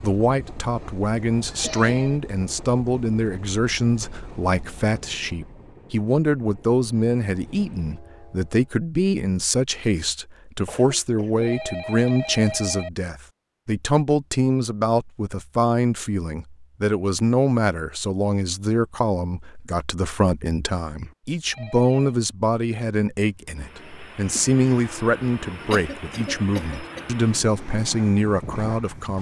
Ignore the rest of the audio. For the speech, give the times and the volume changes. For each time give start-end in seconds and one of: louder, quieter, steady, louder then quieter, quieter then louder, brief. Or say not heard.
0.0-29.1 steady.